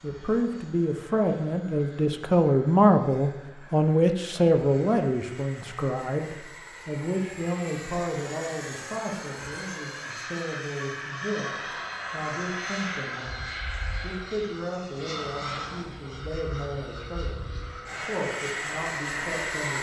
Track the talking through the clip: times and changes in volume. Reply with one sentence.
You can hear the talking from 0.0 to 19.7 s, getting quieter.